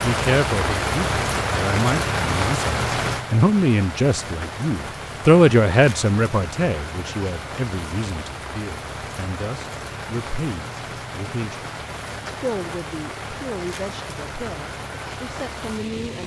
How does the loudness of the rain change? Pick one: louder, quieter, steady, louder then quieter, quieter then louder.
quieter.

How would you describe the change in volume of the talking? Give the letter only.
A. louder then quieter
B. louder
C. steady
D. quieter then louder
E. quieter
A.